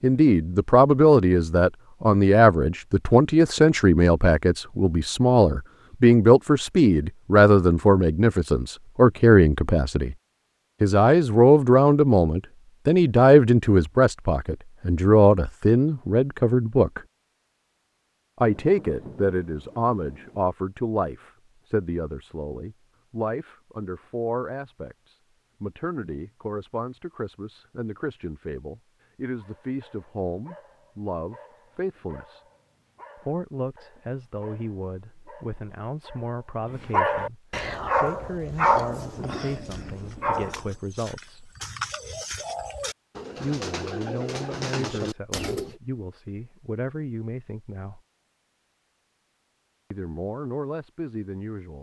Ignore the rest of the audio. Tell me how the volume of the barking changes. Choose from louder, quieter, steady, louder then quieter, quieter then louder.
louder.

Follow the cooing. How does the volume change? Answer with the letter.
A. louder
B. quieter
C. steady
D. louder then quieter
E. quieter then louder
A.